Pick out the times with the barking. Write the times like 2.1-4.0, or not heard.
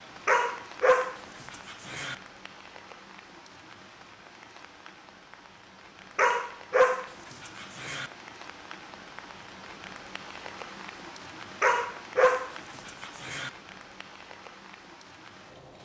0.2-2.1, 6.2-8.1, 11.6-13.5.